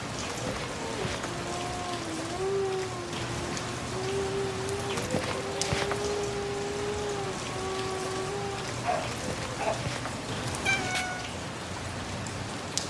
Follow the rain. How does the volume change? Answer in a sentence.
The loudness of the rain stays about the same.